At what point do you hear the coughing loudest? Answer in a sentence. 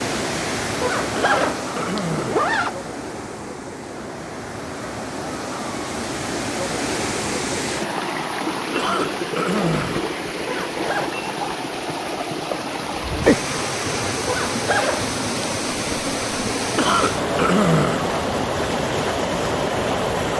The loudest moment of the coughing is at 18 seconds.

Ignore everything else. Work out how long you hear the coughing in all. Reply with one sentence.
The coughing can be heard for 4 seconds in total.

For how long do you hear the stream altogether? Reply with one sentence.
You can hear the stream for 20 seconds altogether.